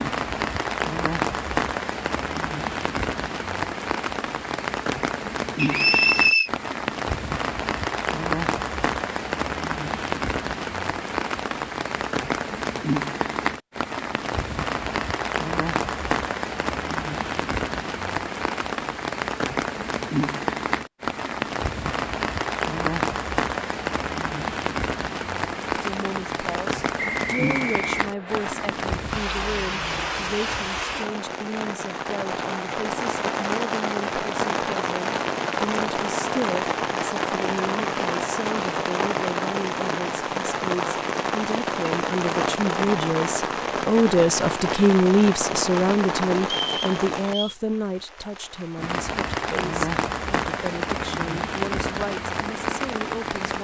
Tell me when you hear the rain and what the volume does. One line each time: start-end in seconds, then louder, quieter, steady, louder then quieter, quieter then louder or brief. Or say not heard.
0.0-53.5 steady.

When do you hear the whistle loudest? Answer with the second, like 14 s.
6 s.